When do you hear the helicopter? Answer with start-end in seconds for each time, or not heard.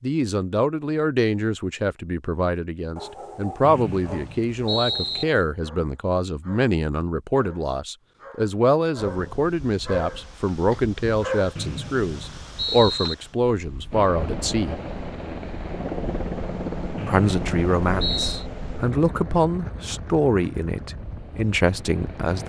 13.9-22.4.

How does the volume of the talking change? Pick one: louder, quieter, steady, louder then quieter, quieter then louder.
steady.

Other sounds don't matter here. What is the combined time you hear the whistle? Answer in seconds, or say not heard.
5 s.